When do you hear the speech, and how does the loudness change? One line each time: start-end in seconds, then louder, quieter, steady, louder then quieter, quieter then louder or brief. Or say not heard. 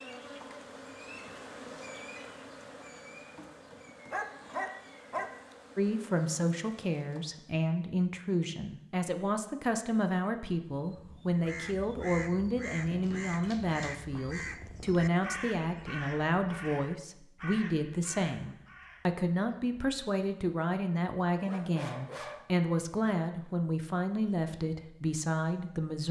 5.8-26.0 steady.